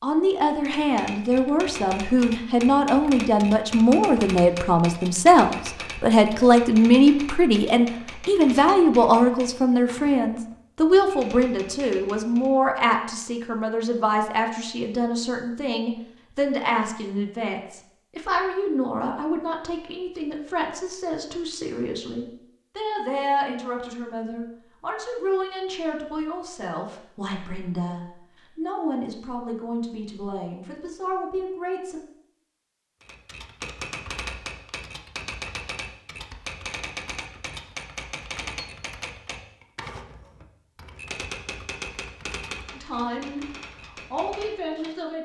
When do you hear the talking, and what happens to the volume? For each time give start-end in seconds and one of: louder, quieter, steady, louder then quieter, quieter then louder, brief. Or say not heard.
0.0-32.0 quieter
42.7-43.5 brief
44.1-45.1 brief.